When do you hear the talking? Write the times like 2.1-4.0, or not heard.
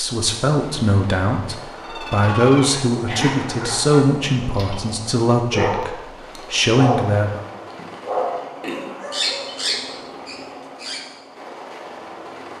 0.0-7.5.